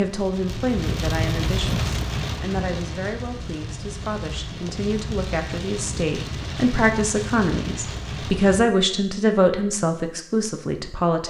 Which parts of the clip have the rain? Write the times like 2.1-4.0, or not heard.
0.0-8.6.